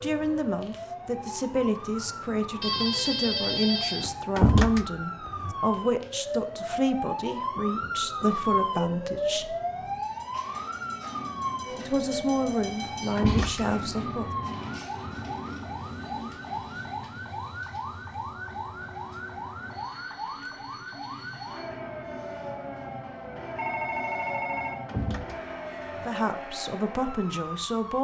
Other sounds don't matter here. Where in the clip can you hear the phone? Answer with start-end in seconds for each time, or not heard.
2.6-4.1, 23.6-24.8.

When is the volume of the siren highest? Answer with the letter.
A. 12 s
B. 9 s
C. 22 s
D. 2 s
B.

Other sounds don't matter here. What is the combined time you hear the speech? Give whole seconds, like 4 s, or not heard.
14 s.